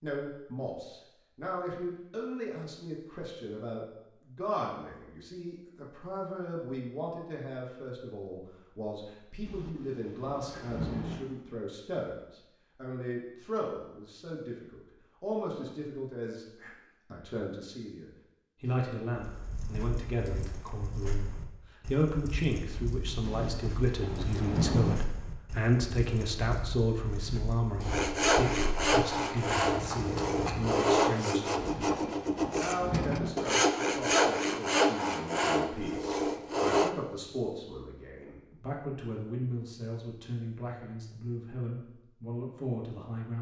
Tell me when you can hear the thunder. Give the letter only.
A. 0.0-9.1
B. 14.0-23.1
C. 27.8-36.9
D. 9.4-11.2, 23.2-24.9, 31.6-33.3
D.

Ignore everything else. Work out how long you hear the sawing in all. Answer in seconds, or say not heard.
9 s.